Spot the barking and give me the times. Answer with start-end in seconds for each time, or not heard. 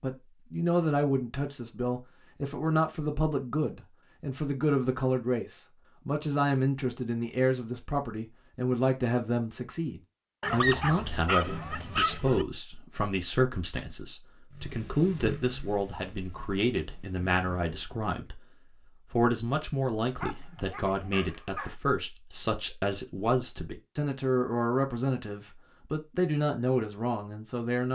10.4-12.4, 20.2-21.8.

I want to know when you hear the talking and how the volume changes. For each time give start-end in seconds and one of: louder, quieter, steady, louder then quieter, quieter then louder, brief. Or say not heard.
0.0-18.4 steady
19.1-27.9 steady.